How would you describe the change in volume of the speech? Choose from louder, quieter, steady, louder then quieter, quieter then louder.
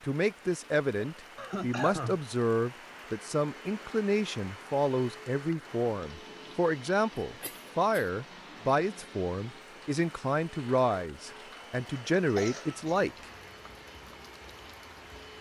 steady.